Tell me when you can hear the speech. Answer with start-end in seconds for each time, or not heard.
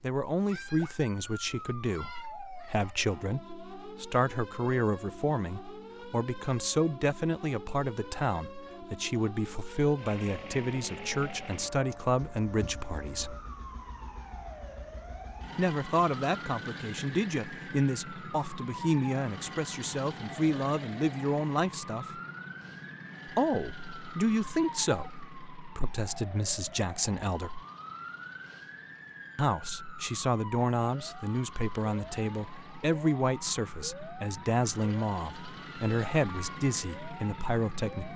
0.0-13.3, 15.6-22.2, 23.2-27.6, 29.4-38.1.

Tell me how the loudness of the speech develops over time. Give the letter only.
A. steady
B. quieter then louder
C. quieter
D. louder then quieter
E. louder
A.